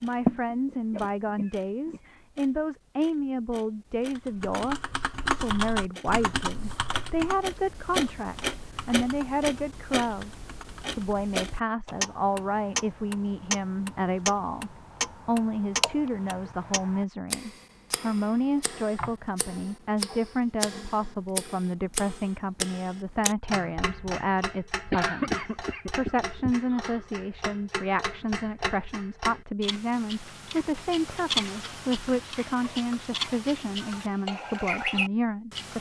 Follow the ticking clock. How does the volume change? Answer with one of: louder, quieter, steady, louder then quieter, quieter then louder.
louder.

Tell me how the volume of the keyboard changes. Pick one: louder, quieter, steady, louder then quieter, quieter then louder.
quieter.